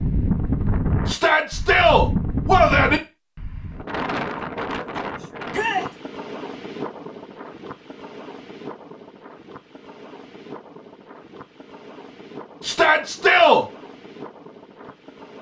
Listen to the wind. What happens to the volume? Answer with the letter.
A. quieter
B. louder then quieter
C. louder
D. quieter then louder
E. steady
A.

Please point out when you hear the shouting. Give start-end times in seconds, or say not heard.
1.1-3.0, 5.5-5.9, 12.6-13.7.